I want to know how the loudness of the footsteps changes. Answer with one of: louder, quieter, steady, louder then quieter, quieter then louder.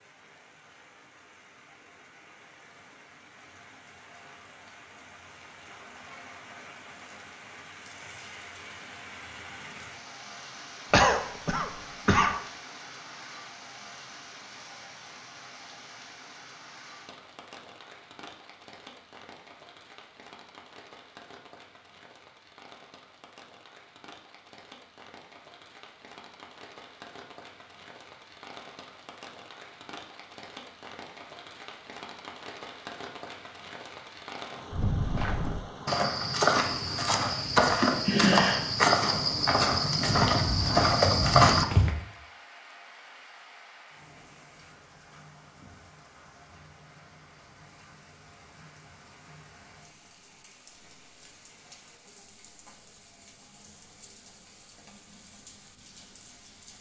louder.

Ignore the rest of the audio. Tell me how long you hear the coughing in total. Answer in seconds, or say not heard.
2 s.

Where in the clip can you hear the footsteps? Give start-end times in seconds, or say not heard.
34.7-41.9.